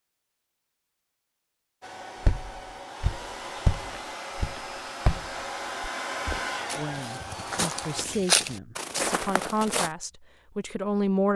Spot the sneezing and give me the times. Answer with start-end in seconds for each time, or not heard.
not heard.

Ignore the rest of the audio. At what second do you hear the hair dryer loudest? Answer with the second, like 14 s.
6 s.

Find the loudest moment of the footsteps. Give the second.
8 s.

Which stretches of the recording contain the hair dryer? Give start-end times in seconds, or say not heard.
1.8-8.1.